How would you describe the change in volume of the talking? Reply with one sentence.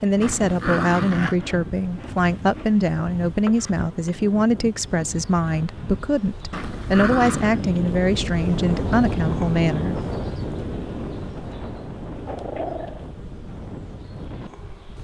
The loudness of the talking stays about the same.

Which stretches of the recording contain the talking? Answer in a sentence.
You can hear the talking from 0.0 to 9.9 s.